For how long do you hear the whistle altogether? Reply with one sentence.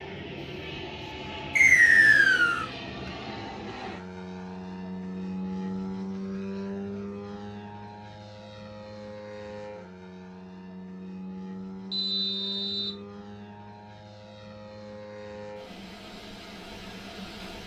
The whistle can be heard for 2 seconds in total.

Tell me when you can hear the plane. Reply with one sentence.
You can hear the plane from 0.0 to 17.6 s.